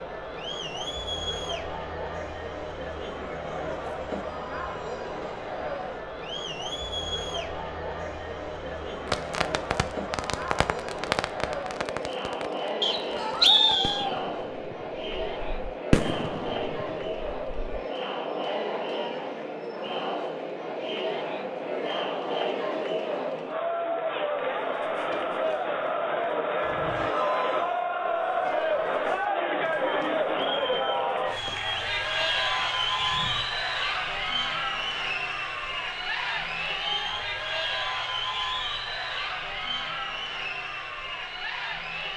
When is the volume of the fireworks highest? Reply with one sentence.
The volume of the fireworks peaks at 16 seconds.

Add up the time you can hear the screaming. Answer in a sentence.
You can hear the screaming for 2 seconds altogether.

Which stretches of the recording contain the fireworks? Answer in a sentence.
The fireworks can be heard from 9.1 to 17.8 s.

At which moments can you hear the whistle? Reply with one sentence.
You can hear the whistle from 12.8 to 14.1 s.